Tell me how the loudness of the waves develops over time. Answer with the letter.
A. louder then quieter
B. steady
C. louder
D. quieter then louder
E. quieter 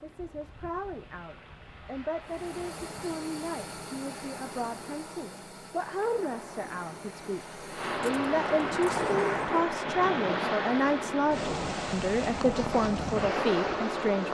C.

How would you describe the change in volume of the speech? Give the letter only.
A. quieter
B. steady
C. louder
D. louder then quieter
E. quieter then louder
C.